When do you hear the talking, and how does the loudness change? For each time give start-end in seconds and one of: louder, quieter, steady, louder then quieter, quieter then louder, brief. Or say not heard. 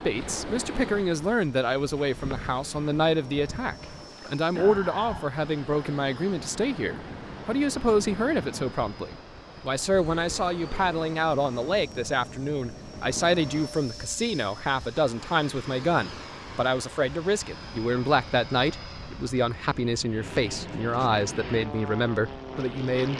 0.0-23.1 steady.